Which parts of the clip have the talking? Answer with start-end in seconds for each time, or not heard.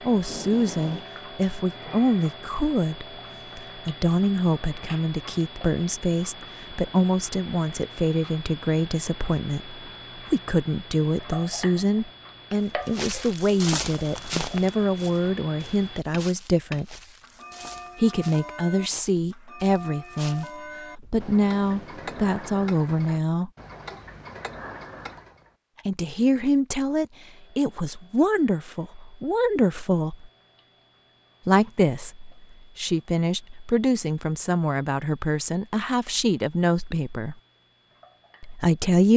0.0-16.9, 17.9-23.5, 25.9-30.3, 31.4-37.4, 38.4-39.1.